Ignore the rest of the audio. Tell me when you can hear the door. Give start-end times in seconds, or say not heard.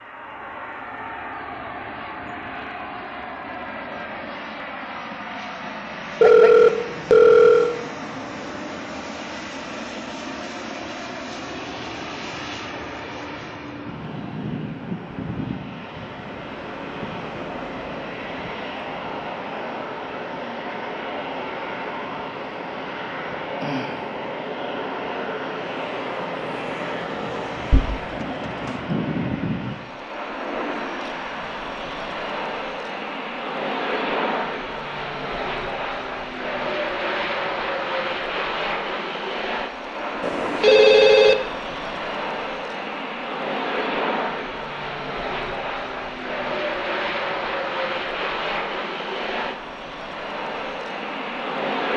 not heard.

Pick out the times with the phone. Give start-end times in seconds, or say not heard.
6.2-7.8, 27.7-28.9, 40.2-41.4.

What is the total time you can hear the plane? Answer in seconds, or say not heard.
52 s.